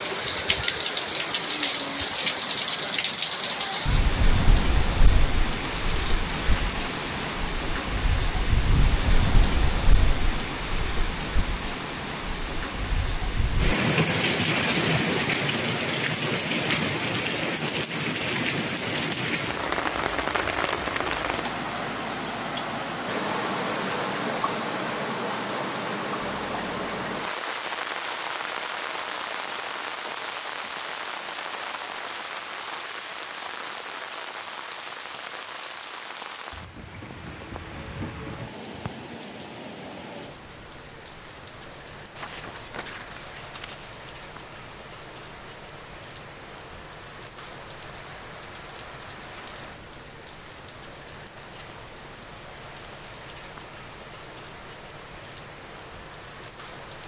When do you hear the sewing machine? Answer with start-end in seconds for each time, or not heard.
not heard.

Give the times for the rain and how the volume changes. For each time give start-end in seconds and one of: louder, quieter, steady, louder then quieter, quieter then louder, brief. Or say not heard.
0.0-57.0 quieter.